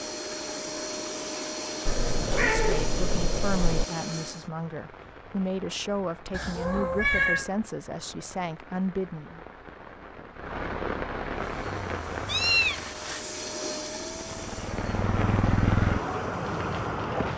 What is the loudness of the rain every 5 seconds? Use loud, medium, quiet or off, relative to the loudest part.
quiet, quiet, medium, loud.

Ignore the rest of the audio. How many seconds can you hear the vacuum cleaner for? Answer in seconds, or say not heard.
10 s.